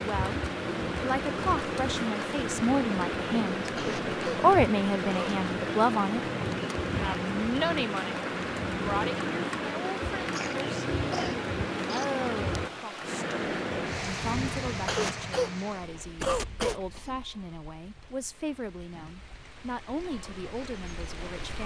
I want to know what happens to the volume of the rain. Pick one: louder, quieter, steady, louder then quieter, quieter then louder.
quieter.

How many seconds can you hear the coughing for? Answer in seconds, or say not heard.
6 s.